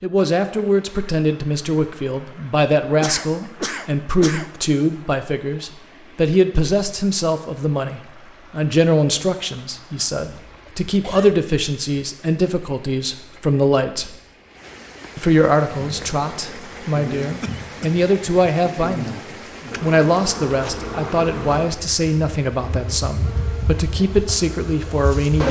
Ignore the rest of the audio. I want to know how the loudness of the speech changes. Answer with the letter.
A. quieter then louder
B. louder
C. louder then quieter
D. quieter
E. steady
E.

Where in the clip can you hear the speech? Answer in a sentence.
You can hear the speech from 0.0 to 14.2 s, from 15.2 to 19.2 s and from 19.8 to 25.4 s.